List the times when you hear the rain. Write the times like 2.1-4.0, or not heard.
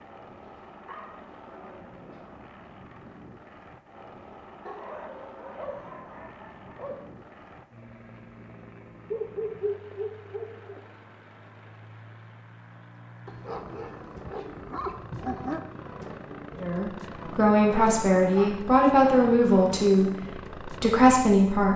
not heard.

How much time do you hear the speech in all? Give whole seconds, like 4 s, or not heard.
5 s.